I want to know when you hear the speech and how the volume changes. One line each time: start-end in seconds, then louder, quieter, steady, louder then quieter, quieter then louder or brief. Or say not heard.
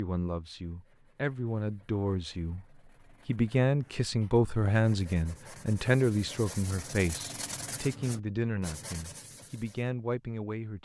0.0-10.8 louder then quieter.